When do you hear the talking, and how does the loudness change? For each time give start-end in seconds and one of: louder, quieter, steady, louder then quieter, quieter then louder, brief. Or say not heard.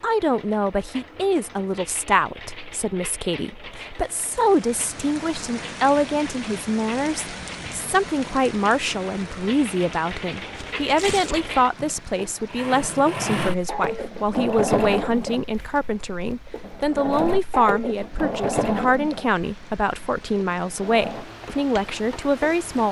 0.0-22.8 steady.